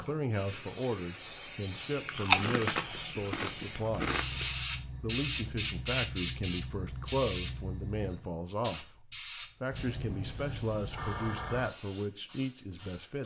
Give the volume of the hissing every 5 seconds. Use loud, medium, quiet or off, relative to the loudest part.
loud, loud, medium.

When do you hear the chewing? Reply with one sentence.
You can hear the chewing from 2.0 to 4.6 s.